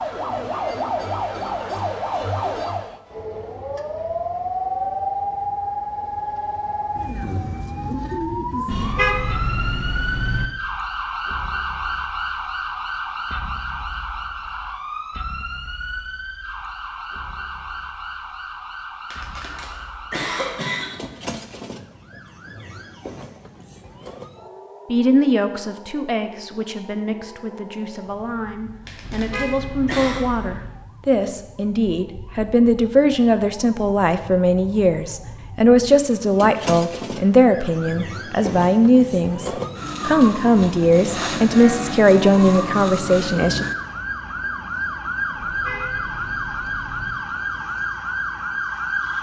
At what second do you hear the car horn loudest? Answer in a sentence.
The volume of the car horn peaks at 9 seconds.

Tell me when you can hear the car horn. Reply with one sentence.
You can hear the car horn from 8.7 to 10.4 s, from 29.0 to 30.8 s and from 45.4 to 47.1 s.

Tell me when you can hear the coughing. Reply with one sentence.
You can hear the coughing from 19.1 to 20.9 s and from 28.9 to 30.2 s.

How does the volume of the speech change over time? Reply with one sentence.
The loudness of the speech goes up.